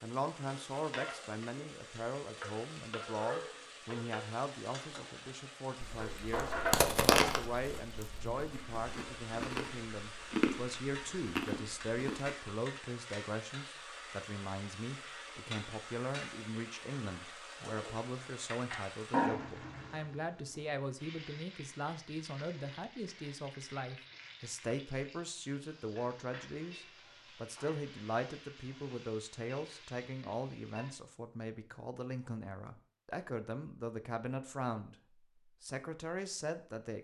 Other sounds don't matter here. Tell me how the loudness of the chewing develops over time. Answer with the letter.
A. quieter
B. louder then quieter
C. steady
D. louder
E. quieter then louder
E.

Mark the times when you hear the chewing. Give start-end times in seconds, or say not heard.
5.8-12.3.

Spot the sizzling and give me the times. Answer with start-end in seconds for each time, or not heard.
0.0-31.0.